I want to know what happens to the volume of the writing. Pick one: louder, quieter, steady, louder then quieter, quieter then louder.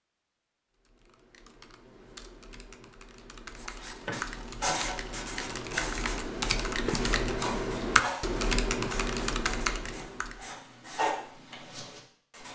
quieter then louder.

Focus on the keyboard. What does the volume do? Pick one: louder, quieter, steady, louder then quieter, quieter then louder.
louder.